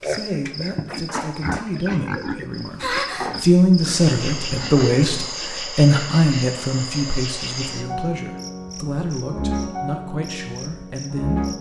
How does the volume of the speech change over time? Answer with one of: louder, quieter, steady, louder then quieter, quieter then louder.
louder then quieter.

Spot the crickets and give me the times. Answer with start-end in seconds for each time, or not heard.
0.0-11.5.